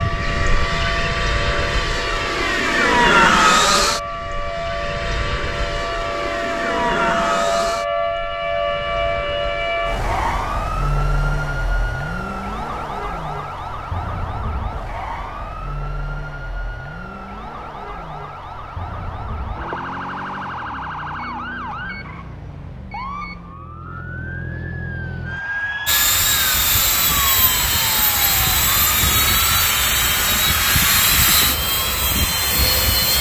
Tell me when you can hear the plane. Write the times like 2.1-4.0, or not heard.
0.0-10.3, 25.9-33.1.